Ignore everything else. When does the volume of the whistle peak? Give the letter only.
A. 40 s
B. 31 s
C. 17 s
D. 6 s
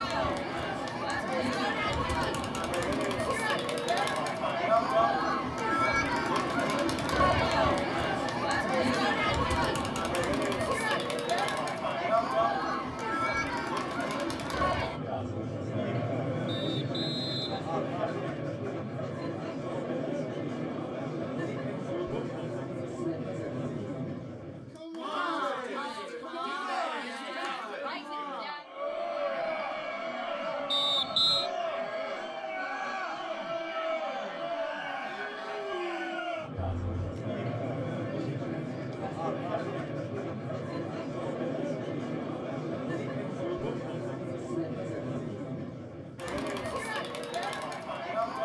B.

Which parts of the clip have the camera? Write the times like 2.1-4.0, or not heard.
36.5-37.2.